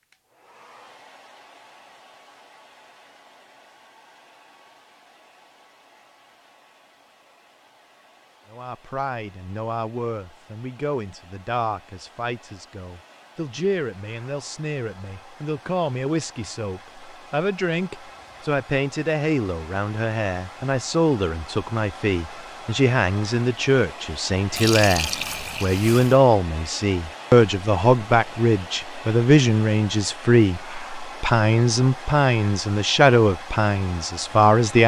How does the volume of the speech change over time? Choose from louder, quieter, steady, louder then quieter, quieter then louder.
louder.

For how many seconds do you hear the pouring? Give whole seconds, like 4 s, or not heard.
2 s.